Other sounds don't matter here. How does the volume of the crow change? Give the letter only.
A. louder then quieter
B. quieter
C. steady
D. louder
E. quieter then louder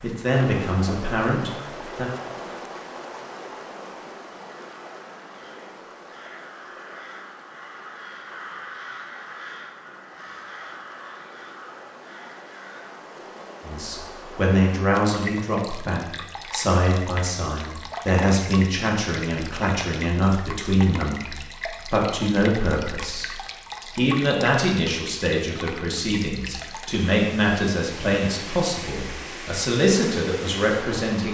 A.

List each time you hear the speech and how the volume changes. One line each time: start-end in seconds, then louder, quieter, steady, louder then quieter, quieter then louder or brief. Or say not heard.
0.0-2.1 brief
13.6-31.2 steady.